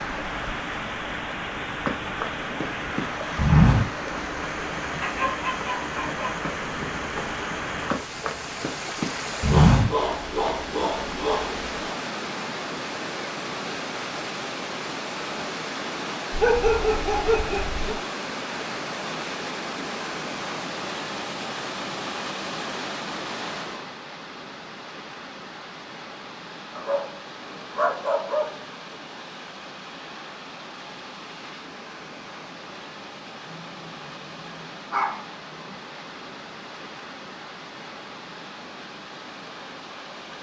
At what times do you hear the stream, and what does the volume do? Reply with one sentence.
You can hear the stream from 0.0 to 40.3 s, getting quieter.